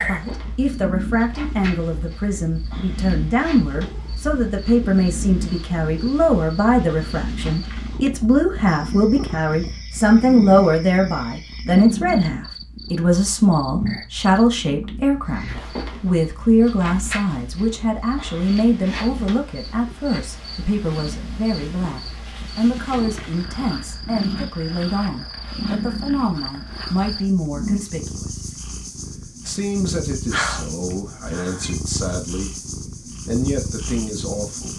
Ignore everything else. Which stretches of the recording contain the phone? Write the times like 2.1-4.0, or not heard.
30.3-31.8.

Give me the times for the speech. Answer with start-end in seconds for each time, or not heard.
0.0-28.6, 29.4-32.6, 33.2-34.7.